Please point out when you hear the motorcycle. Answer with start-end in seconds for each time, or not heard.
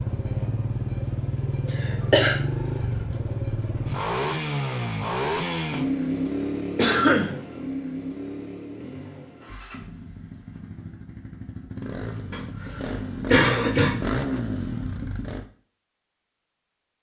0.0-15.5.